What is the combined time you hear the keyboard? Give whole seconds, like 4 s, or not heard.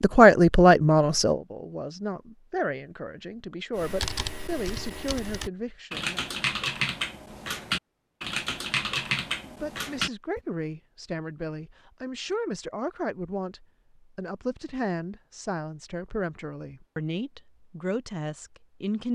7 s.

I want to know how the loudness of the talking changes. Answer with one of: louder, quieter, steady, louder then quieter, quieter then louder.
quieter.